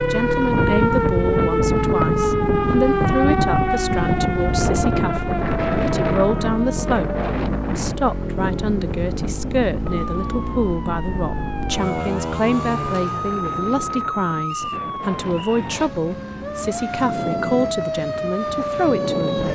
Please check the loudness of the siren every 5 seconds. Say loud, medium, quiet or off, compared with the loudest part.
loud, medium, medium, medium.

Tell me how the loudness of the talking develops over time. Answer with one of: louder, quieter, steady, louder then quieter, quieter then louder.
steady.